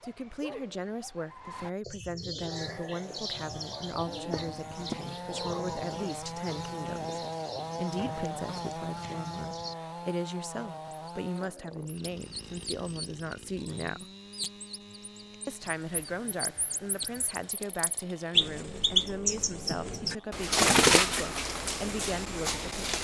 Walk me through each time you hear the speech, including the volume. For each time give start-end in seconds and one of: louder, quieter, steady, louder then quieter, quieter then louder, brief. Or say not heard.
0.0-14.1 steady
15.4-22.7 steady.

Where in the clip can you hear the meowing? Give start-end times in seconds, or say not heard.
not heard.